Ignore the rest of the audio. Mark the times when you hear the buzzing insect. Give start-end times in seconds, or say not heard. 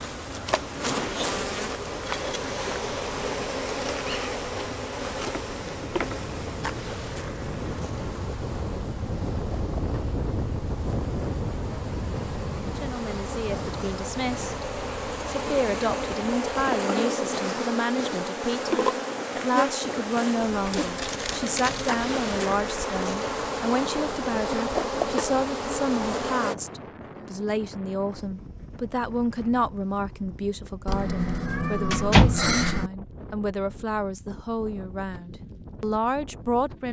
0.0-26.6.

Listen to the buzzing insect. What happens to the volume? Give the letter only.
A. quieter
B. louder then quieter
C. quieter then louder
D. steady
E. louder
C.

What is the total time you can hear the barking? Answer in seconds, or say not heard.
not heard.